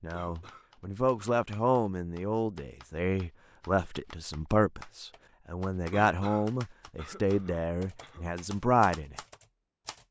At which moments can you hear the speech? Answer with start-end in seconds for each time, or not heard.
0.0-9.2.